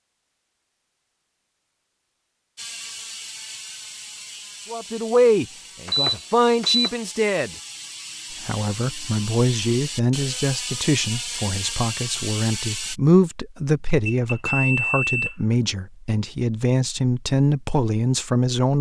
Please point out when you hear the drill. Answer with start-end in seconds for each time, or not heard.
not heard.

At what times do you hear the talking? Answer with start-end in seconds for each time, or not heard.
4.7-7.5, 8.4-18.7.